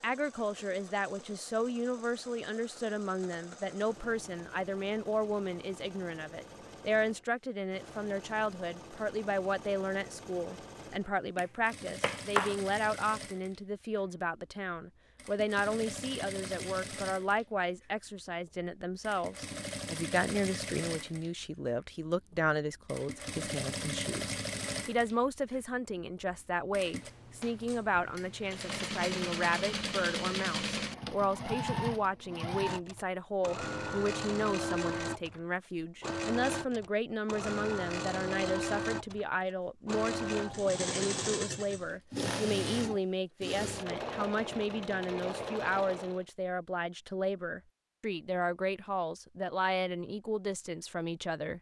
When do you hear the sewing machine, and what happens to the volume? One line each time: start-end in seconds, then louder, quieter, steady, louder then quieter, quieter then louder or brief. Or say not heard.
0.0-46.2 louder.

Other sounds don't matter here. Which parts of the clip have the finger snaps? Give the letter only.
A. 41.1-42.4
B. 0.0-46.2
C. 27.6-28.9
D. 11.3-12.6
D.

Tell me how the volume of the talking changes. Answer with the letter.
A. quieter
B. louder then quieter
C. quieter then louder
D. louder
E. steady
E.